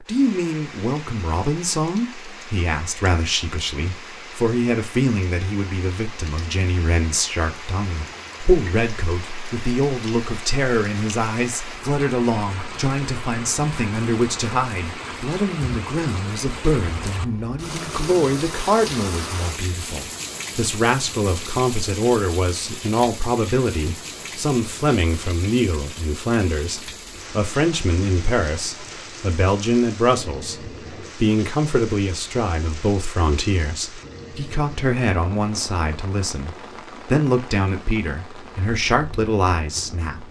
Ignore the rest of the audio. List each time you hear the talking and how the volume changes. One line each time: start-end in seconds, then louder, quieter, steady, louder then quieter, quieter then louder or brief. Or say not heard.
0.0-40.2 steady.